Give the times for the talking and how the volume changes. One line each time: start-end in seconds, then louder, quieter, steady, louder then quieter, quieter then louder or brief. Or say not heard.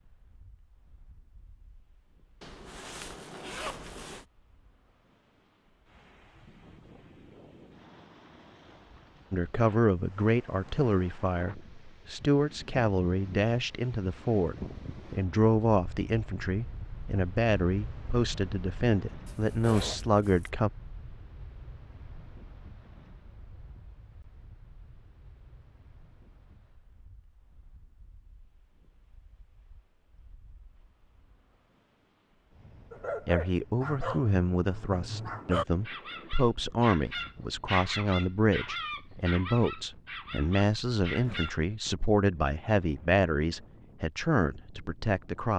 9.3-20.7 steady
33.2-45.5 steady.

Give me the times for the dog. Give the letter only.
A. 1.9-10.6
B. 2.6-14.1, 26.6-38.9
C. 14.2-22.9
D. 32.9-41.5
D.